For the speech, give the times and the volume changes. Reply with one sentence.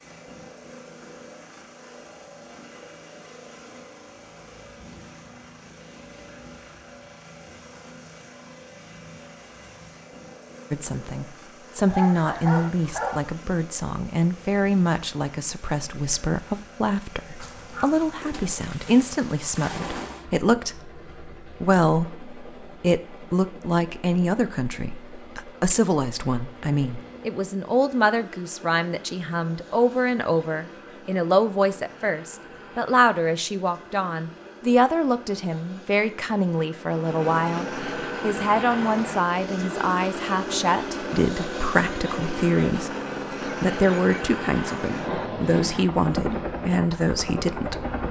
You can hear the speech from 10.7 to 47.9 s, at a steady volume.